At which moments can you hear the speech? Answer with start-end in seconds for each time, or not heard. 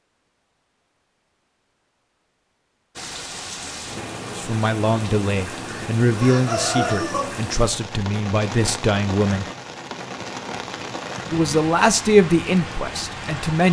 4.3-9.4, 11.3-13.6.